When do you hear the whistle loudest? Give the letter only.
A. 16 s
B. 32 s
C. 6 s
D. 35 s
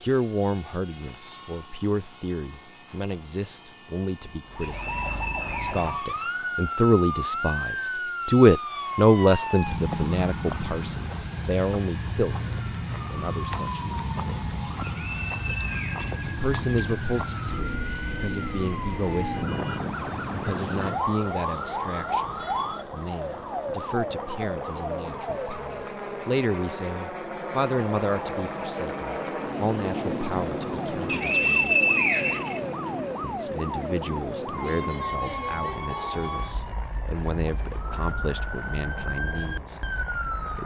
B.